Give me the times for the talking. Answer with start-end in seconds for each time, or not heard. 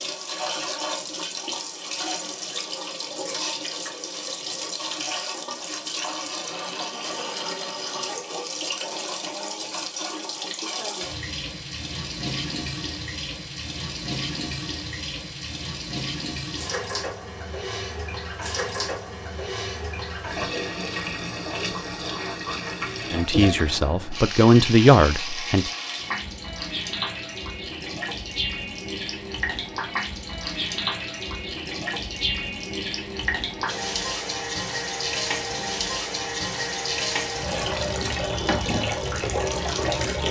23.1-25.7.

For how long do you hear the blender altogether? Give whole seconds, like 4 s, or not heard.
not heard.